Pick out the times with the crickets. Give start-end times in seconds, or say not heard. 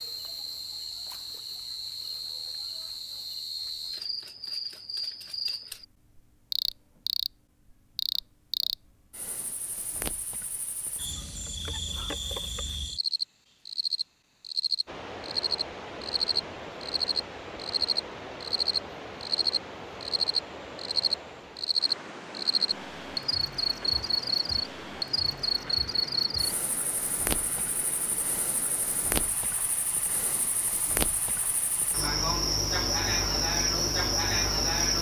0.0-34.9.